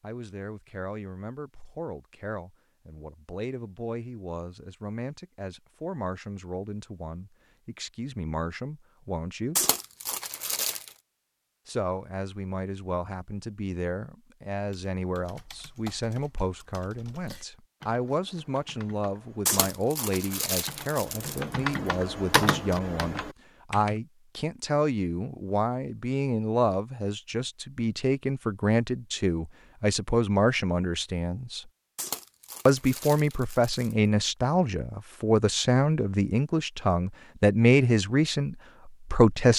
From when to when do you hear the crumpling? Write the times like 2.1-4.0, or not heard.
9.6-10.9, 19.4-21.8, 31.9-34.0.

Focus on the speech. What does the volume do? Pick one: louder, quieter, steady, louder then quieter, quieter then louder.
louder.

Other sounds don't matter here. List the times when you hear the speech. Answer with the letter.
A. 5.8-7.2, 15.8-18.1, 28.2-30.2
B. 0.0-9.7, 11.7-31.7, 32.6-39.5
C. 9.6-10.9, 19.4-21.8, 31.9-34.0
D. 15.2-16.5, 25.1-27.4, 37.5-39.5
B.